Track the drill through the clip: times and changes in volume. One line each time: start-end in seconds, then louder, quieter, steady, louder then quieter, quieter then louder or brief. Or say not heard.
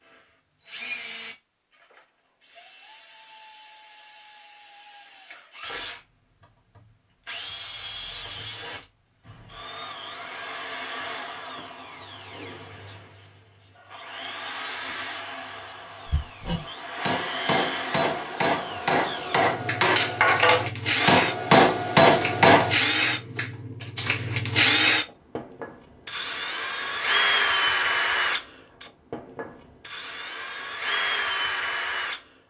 0.1-32.2 louder.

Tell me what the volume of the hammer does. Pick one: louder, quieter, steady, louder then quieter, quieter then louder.
louder.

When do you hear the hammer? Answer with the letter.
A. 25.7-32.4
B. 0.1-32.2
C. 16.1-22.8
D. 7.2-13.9
C.